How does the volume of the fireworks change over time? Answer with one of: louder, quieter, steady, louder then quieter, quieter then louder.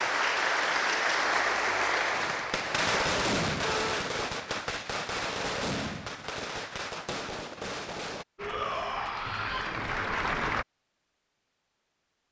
quieter.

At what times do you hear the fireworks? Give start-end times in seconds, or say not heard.
2.1-8.2.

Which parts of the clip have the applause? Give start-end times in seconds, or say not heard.
0.0-3.1, 8.3-10.7.